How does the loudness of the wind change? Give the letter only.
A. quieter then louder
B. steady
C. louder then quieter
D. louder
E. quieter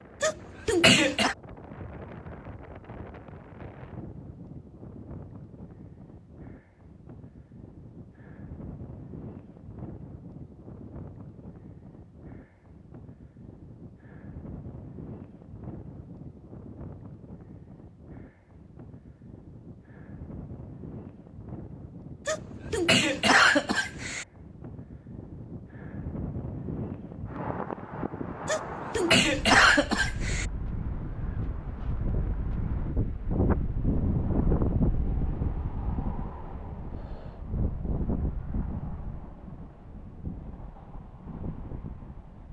D.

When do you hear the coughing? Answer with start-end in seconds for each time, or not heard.
0.2-1.4, 22.2-24.2, 28.4-30.4.